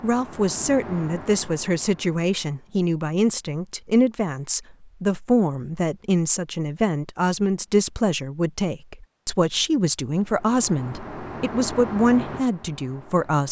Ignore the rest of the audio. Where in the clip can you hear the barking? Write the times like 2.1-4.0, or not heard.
not heard.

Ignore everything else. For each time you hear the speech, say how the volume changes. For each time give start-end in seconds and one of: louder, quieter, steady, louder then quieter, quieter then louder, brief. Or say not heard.
0.0-13.4 steady.